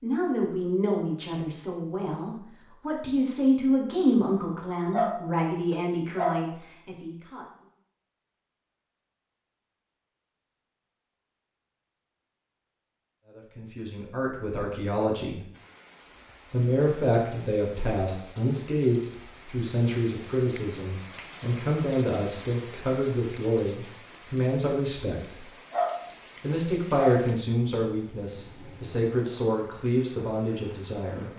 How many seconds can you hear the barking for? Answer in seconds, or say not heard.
3 s.